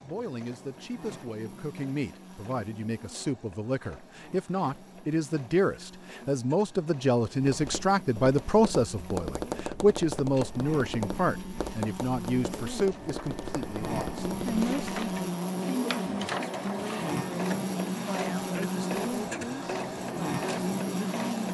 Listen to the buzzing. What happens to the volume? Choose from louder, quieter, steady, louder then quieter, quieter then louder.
louder.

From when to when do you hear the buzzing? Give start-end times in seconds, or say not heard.
0.0-21.4.